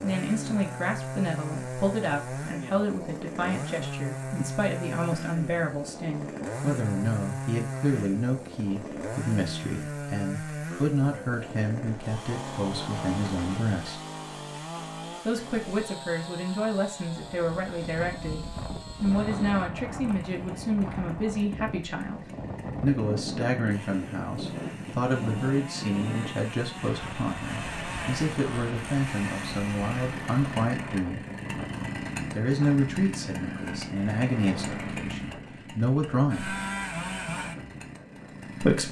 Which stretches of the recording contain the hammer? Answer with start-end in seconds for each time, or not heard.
not heard.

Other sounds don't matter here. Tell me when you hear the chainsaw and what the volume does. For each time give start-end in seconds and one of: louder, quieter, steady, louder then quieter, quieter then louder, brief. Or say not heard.
0.0-38.8 quieter then louder.